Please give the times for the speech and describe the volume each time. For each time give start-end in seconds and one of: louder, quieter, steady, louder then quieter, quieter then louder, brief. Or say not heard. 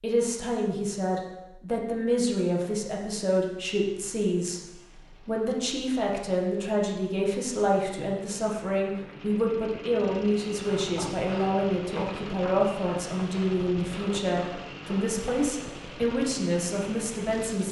0.0-17.6 steady.